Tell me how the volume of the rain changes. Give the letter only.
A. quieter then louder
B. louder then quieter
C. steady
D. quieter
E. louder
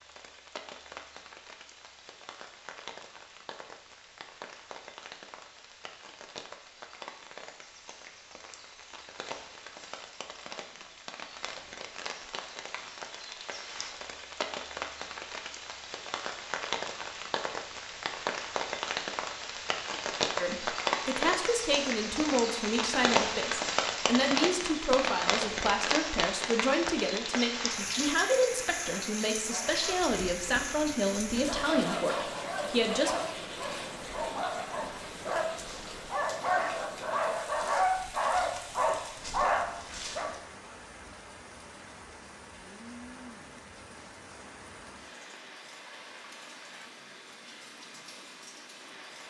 B.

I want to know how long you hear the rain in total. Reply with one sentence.
The rain can be heard for 49 seconds in total.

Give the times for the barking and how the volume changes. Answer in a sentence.
You can hear the barking from 29.4 to 40.4 s, getting louder.